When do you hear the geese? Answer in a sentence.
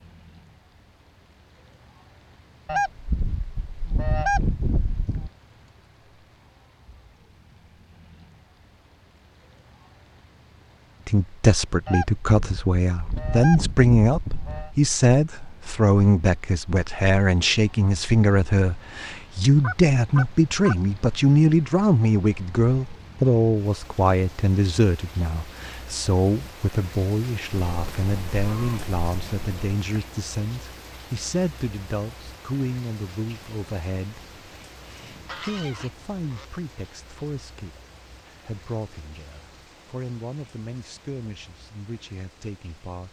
You can hear the geese from 2.6 to 5.3 s, from 11.8 to 14.7 s, from 19.6 to 20.8 s, from 27.6 to 29.8 s and from 34.9 to 36.5 s.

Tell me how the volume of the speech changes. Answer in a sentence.
The loudness of the speech goes down.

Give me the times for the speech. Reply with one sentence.
You can hear the speech from 11.1 to 43.0 s.